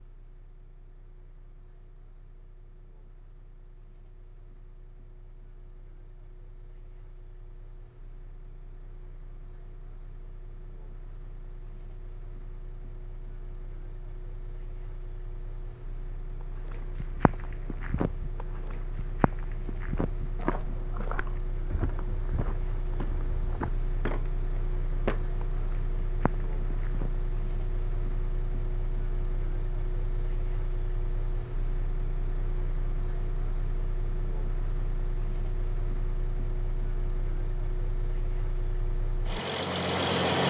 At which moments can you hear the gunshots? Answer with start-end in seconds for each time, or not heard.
not heard.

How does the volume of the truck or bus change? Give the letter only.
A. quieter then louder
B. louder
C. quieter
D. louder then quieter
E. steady
B.